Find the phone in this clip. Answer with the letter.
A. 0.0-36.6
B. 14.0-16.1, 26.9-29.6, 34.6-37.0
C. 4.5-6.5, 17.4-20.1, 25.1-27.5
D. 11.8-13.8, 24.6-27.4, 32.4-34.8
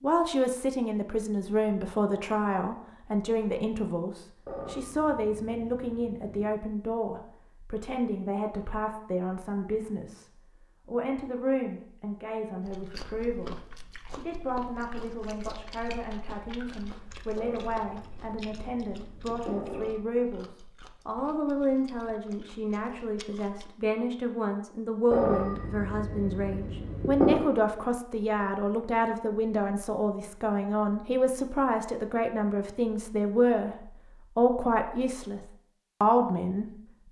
C.